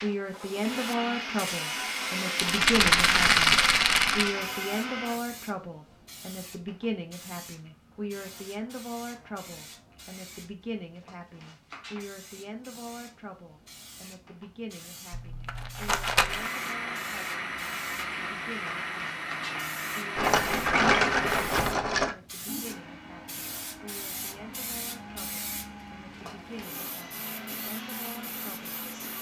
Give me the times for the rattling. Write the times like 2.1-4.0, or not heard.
2.4-4.3, 15.1-16.5, 20.1-22.1.